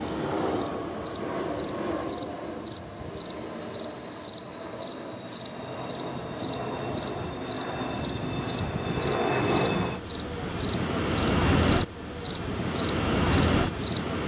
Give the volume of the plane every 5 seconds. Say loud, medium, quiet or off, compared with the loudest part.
medium, loud, loud.